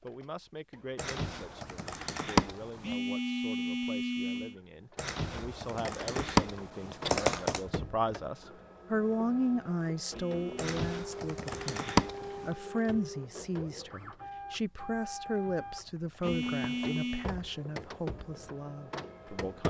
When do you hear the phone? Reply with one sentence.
The phone can be heard from 2.8 to 4.5 s, from 10.1 to 10.8 s and from 16.2 to 17.3 s.